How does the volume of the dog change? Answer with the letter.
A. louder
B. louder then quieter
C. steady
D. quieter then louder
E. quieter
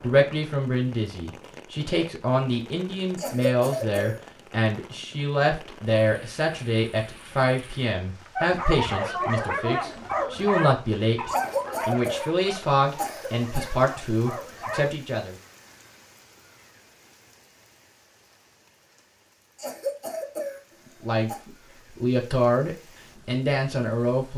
E.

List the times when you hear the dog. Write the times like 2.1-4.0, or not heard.
8.3-14.9.